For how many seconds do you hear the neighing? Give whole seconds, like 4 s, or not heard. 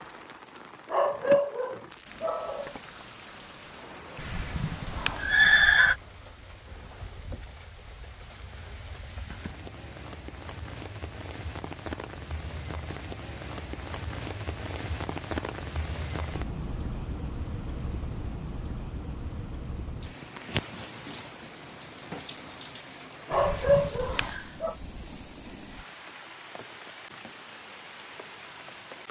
3 s.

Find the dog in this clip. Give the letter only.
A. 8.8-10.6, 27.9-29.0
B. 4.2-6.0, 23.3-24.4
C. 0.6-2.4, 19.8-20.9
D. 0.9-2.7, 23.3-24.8
D.